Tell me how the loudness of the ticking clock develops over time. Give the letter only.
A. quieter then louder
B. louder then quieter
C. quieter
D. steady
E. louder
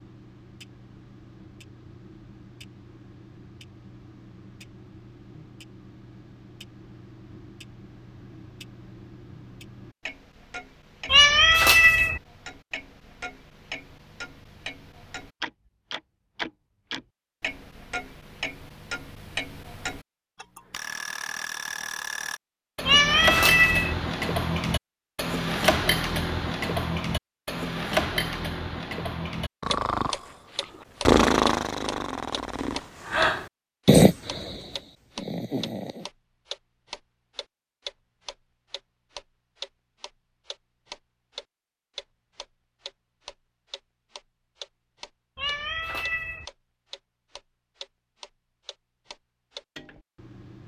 B.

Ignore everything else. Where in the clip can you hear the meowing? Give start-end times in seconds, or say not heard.
11.1-12.2, 22.9-23.9, 45.4-46.5.